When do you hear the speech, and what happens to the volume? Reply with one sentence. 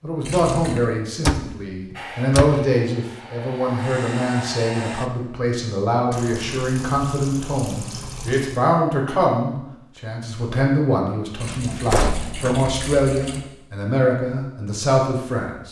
The speech can be heard from 0.0 to 15.6 s, at a steady volume.